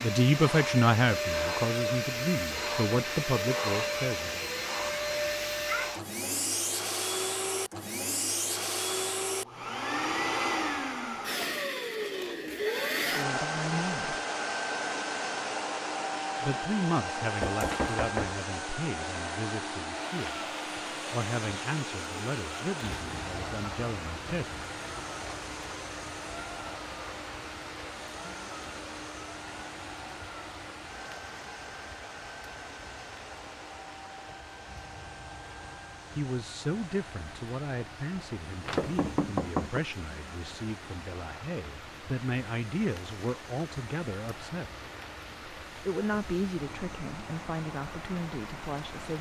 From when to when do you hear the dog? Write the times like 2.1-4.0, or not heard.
not heard.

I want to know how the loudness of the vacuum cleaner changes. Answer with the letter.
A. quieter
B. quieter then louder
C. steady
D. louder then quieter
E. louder
A.